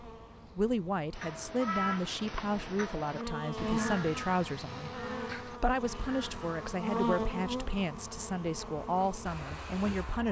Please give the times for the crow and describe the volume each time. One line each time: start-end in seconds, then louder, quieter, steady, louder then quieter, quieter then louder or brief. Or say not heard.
1.1-6.8 quieter.